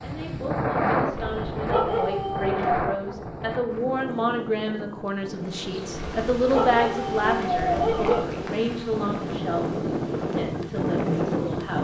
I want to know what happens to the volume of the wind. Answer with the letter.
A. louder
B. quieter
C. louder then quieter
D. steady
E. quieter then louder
E.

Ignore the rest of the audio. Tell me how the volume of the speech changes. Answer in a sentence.
The loudness of the speech goes up, then down.